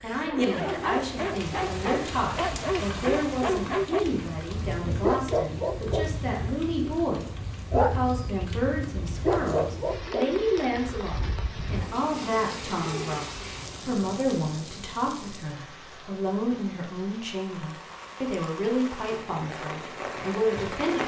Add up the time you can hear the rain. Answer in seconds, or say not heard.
21 s.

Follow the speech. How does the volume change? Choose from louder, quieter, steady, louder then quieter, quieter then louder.
steady.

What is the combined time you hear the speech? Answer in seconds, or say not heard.
21 s.